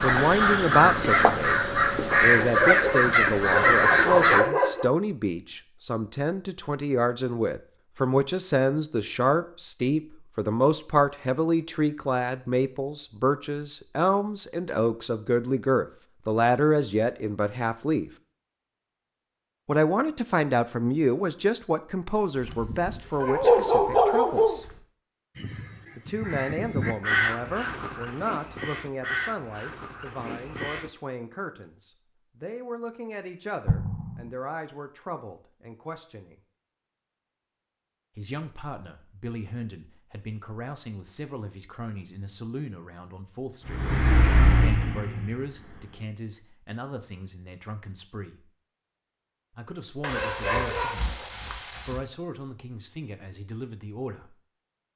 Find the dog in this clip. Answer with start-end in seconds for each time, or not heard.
2.4-4.9, 22.4-24.6, 50.0-52.0.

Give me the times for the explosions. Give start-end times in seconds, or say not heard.
33.6-34.3.